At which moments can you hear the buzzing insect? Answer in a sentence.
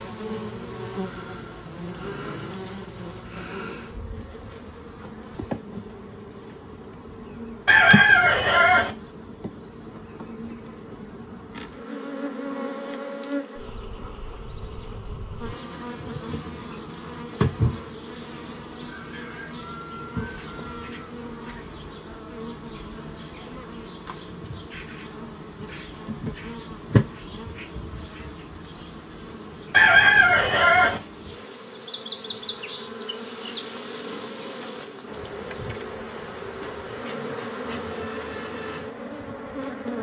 The buzzing insect can be heard from 0.0 to 39.9 s.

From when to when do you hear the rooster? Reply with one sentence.
The rooster can be heard from 7.7 to 8.9 s and from 29.7 to 31.0 s.